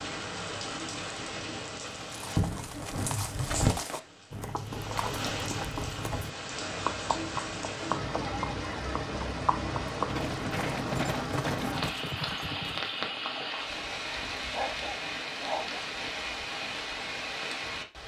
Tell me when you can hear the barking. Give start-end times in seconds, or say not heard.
14.5-15.8.